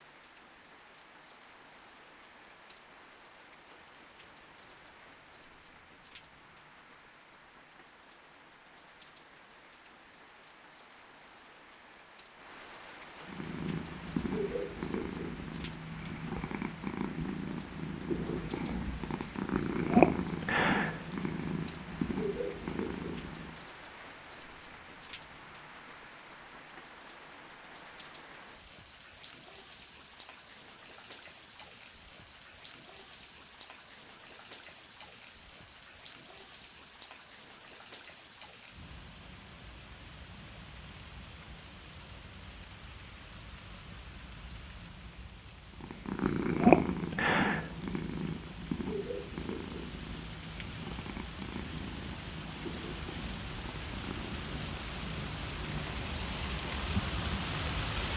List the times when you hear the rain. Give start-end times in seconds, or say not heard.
0.0-58.1.